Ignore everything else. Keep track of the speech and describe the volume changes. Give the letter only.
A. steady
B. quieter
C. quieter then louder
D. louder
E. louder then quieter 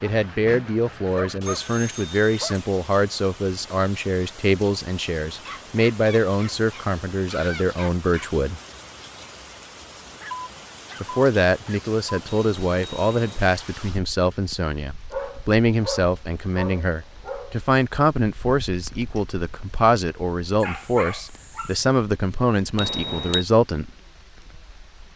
A.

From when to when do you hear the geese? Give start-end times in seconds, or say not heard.
not heard.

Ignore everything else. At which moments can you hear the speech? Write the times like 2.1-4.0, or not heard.
0.0-8.6, 11.0-23.9.